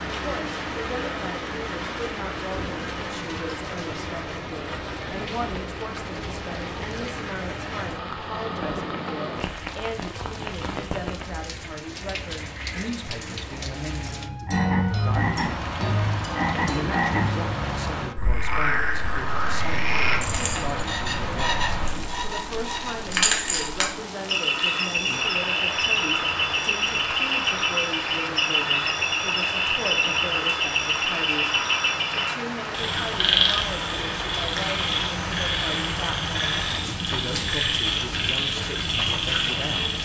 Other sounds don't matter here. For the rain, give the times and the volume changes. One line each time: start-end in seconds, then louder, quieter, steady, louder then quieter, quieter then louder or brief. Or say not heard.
0.0-39.9 steady.